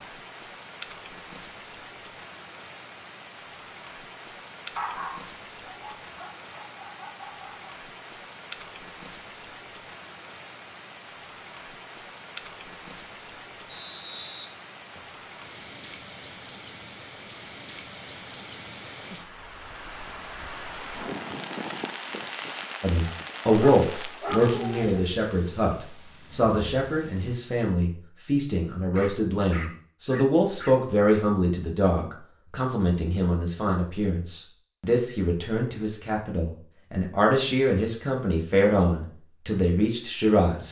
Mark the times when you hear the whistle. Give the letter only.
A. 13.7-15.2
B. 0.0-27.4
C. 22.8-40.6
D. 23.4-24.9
A.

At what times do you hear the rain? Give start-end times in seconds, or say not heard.
0.0-27.4.